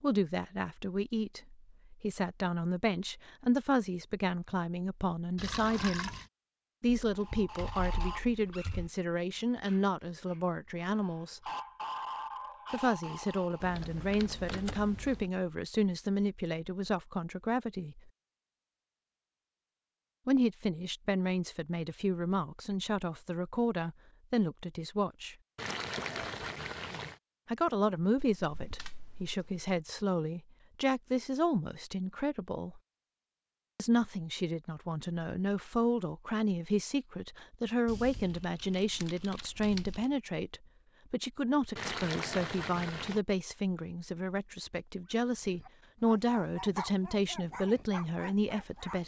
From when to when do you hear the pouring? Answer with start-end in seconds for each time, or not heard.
5.3-6.3, 25.6-27.2, 41.8-43.2.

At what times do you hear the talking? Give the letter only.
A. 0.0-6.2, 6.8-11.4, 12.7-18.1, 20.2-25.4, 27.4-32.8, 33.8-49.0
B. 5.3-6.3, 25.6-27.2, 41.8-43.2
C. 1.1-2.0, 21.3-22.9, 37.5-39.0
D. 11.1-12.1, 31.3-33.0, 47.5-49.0
A.